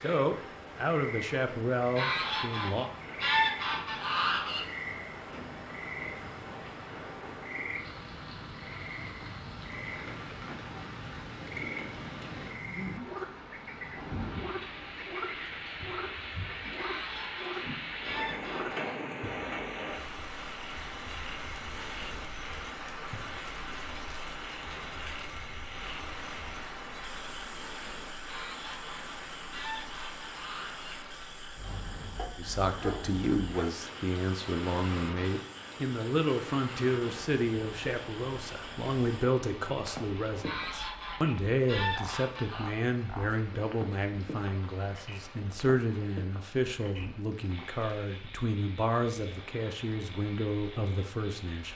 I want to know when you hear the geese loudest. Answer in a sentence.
The loudest moment of the geese is at 3 seconds.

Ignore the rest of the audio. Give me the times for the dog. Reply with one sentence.
The dog can be heard from 32.1 to 33.7 s.